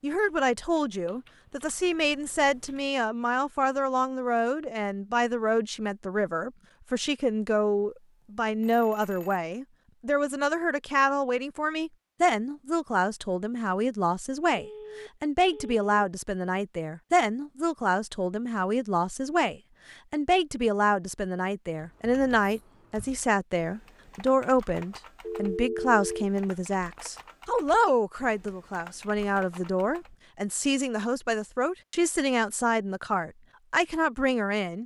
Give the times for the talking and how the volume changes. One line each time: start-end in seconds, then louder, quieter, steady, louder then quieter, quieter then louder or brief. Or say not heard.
0.0-34.8 steady.